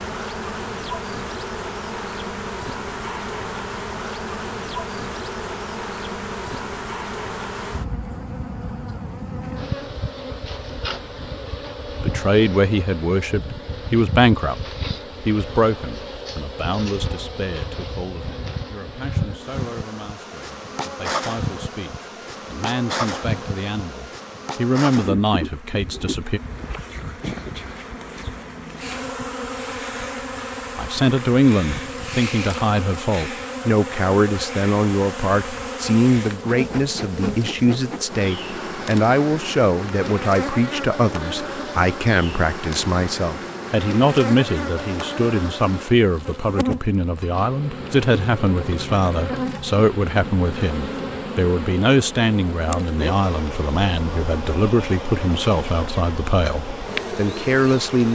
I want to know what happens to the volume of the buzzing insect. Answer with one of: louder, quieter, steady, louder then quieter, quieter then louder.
steady.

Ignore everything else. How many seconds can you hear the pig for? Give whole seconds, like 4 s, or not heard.
not heard.